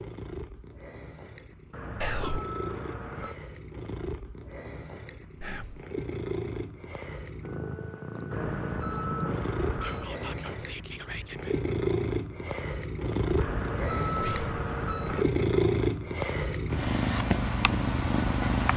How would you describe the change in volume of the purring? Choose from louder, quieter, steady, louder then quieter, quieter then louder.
louder.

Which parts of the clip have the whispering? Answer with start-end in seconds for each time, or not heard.
2.0-2.5, 5.4-5.8, 9.8-11.6, 14.1-14.5.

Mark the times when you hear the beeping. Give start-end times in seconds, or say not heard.
1.7-3.4, 8.3-10.1, 13.3-15.3.